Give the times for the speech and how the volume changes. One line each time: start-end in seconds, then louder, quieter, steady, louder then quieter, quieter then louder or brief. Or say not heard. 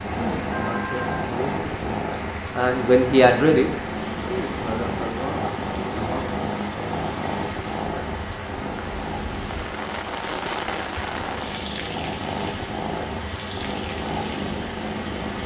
0.1-6.2 louder then quieter.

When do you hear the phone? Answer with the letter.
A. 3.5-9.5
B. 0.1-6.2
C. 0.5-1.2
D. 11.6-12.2
C.